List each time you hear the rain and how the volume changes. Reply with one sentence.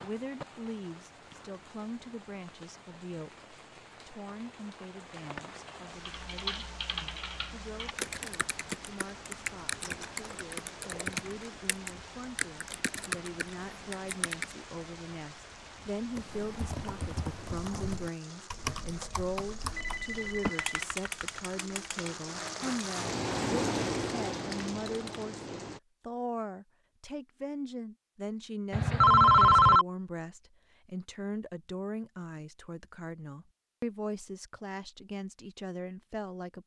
You can hear the rain from 0.0 to 25.8 s, getting louder.